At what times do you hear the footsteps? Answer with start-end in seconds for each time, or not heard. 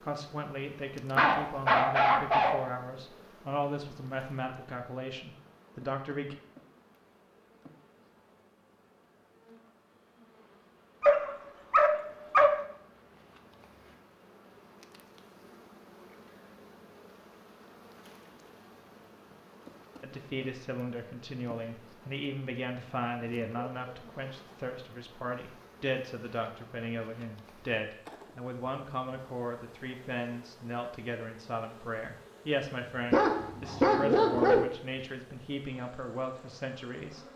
not heard.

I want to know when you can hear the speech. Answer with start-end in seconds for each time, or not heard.
0.0-6.3, 20.0-37.2.